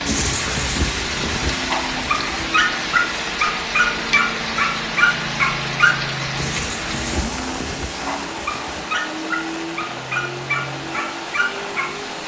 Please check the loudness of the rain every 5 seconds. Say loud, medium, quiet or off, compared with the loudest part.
loud, loud, medium.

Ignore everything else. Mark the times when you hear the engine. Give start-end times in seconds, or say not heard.
0.0-12.2.